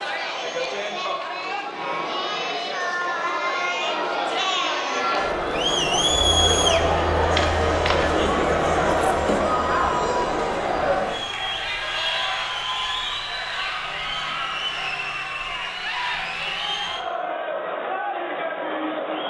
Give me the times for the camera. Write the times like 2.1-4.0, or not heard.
7.3-8.2.